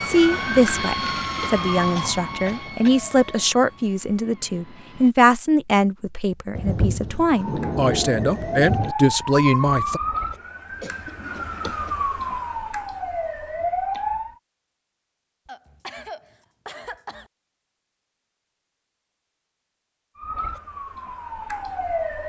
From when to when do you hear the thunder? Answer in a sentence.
You can hear the thunder from 6.5 to 8.9 s.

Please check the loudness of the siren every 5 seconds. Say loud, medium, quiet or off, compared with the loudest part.
loud, loud, loud, off, loud.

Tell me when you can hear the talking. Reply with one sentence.
You can hear the talking from 0.0 to 10.0 s.